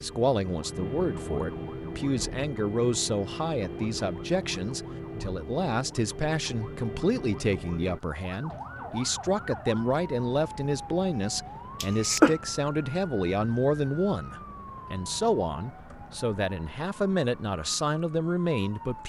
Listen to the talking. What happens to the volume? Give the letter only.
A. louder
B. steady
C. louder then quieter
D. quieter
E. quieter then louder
B.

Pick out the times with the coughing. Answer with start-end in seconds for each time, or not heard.
11.8-12.3.